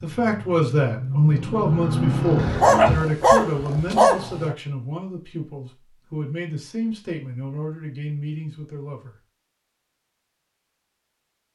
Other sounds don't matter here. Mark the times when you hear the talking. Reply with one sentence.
You can hear the talking from 0.0 to 9.2 s.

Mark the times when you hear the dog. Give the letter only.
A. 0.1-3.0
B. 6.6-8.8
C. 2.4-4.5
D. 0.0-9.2
C.